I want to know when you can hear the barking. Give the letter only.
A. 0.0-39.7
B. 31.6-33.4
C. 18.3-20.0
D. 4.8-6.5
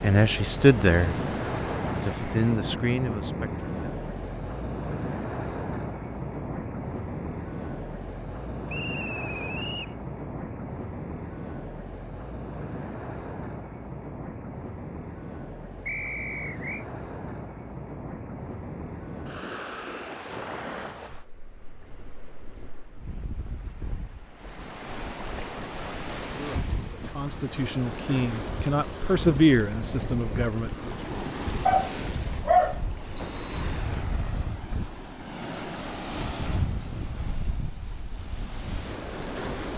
B.